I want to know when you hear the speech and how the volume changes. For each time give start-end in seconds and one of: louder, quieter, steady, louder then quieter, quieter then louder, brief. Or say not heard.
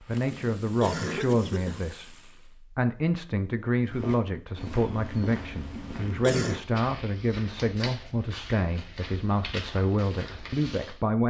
0.0-11.2 steady.